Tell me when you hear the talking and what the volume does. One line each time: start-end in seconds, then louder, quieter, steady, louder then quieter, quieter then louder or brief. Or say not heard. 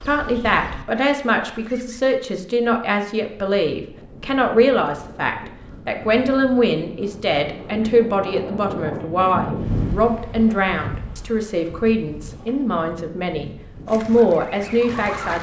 0.1-15.3 steady.